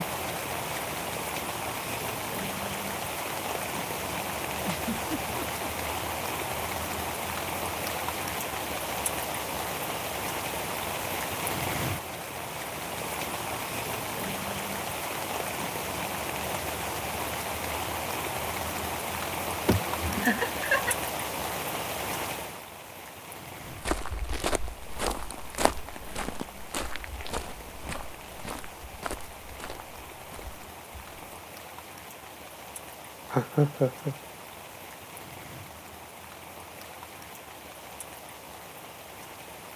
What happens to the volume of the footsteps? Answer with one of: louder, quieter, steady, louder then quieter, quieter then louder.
quieter.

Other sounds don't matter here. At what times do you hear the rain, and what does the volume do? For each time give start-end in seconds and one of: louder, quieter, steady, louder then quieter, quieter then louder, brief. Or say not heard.
0.0-39.7 quieter.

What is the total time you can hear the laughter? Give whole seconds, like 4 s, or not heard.
3 s.